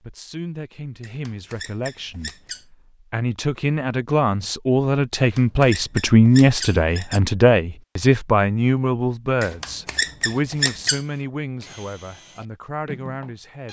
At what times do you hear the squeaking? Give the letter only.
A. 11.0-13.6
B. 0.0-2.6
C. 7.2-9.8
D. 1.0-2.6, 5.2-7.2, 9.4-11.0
D.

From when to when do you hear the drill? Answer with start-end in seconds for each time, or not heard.
11.0-13.6.